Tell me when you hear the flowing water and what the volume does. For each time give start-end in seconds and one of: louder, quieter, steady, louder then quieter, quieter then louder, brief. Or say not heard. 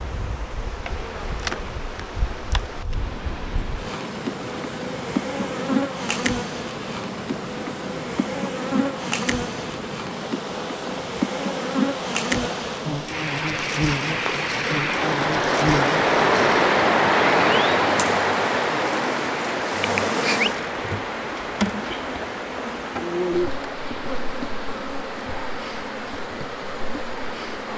0.0-27.7 louder then quieter.